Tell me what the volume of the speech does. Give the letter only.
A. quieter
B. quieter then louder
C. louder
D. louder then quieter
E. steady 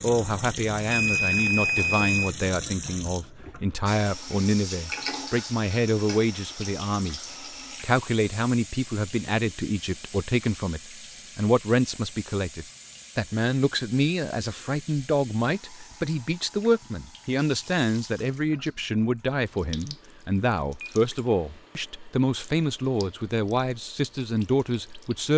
E.